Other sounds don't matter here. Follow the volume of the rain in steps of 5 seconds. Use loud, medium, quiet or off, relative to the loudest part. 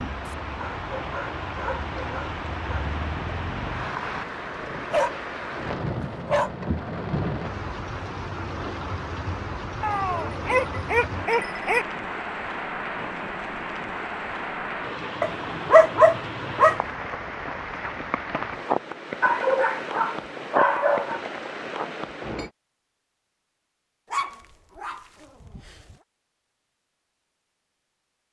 loud, loud, loud, loud, loud, off.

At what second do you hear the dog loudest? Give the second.
16 s.